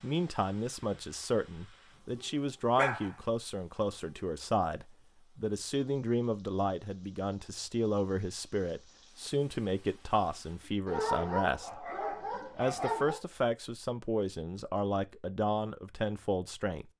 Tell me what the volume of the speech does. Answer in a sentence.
The volume of the speech stays about the same.